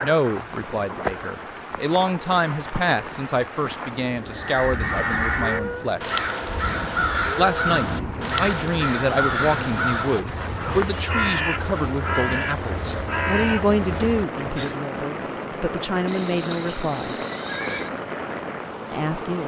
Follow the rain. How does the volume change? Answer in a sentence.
The loudness of the rain stays about the same.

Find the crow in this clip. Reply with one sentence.
You can hear the crow from 4.3 to 14.8 s.